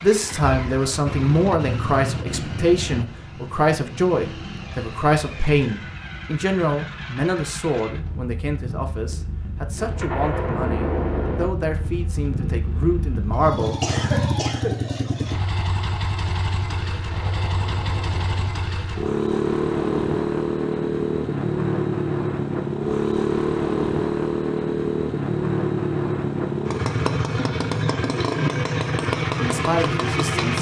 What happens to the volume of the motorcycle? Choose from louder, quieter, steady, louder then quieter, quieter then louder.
louder.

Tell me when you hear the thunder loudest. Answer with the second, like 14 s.
11 s.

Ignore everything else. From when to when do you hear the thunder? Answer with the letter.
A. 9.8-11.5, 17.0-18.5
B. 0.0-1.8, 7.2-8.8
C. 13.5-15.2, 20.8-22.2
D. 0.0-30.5
A.